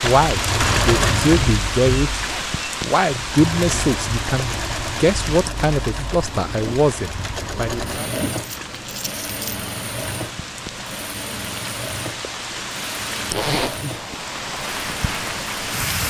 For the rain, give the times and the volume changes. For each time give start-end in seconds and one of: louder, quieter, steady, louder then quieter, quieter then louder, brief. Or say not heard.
0.0-16.0 quieter then louder.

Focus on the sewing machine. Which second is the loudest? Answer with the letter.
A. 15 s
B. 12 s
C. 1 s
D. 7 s
C.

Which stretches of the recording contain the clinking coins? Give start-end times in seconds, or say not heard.
8.3-9.7.